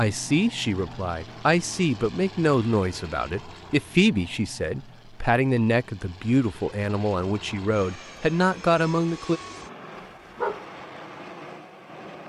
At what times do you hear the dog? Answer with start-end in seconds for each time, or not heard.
9.9-10.7.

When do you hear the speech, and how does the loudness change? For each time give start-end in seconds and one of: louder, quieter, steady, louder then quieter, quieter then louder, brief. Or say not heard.
0.0-9.4 steady.